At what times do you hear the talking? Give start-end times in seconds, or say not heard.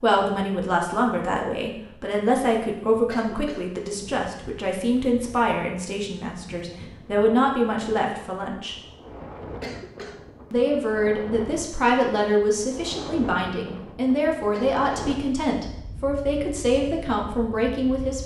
0.0-8.8, 10.5-18.2.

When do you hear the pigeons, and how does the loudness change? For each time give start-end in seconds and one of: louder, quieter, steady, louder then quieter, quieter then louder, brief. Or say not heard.
not heard.